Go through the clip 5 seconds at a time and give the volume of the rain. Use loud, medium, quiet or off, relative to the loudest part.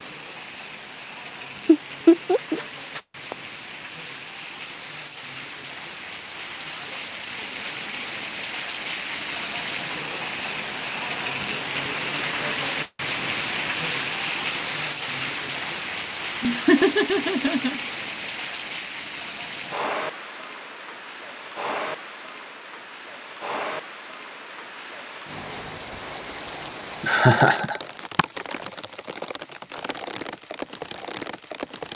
medium, medium, loud, loud, medium, medium, medium.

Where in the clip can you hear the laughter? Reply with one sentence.
The laughter can be heard from 1.6 to 3.4 s, from 16.4 to 17.8 s and from 27.0 to 28.2 s.